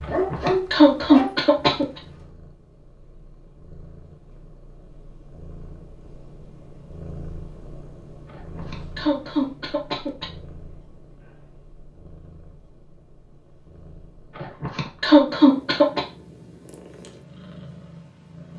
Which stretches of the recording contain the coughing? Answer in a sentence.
You can hear the coughing from 0.1 to 1.9 s, from 8.3 to 10.2 s and from 14.3 to 16.0 s.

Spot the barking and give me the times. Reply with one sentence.
You can hear the barking from 0.0 to 2.0 s.